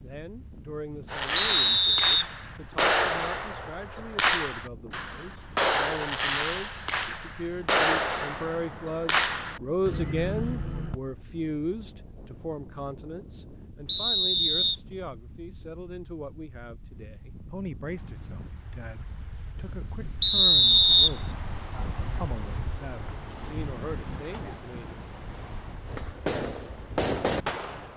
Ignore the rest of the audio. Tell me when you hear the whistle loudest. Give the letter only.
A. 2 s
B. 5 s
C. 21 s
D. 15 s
C.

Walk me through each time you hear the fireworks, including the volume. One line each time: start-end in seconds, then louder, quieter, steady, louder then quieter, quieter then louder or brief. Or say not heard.
1.1-10.9 steady
25.9-27.9 brief.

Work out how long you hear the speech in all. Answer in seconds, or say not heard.
25 s.